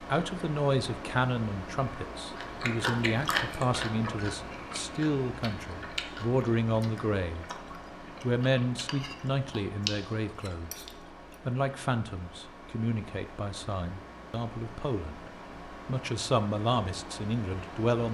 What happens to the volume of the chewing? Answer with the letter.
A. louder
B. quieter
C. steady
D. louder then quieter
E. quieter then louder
E.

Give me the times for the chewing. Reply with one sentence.
You can hear the chewing from 2.4 to 11.2 s.